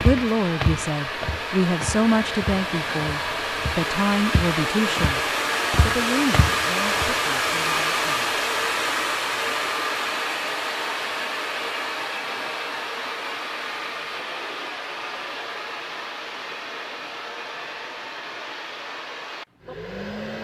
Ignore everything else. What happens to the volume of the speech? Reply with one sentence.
The loudness of the speech goes down.